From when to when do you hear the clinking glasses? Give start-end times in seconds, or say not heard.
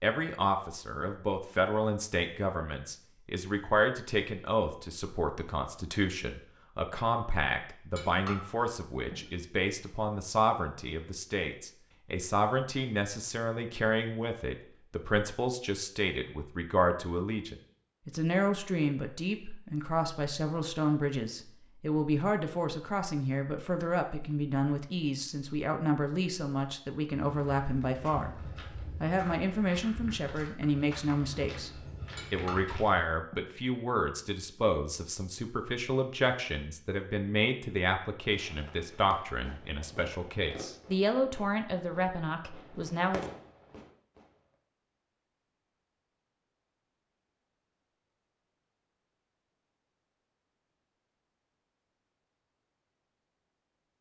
8.0-9.3, 32.1-33.5.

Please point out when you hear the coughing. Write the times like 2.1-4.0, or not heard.
not heard.